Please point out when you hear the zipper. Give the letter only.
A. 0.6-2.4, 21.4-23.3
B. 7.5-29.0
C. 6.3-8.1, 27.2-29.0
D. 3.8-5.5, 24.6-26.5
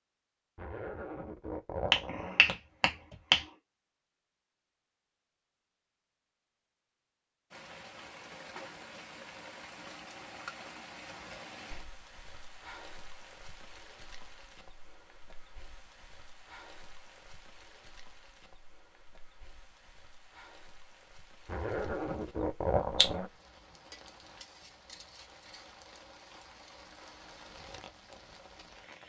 A.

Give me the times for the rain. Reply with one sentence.
The rain can be heard from 7.5 to 29.0 s.